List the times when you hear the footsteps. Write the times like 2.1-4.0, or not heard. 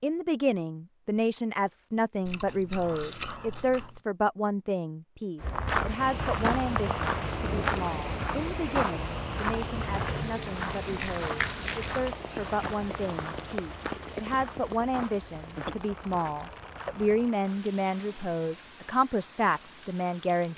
5.4-17.4.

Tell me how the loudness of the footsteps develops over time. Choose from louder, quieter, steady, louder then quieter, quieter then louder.
quieter.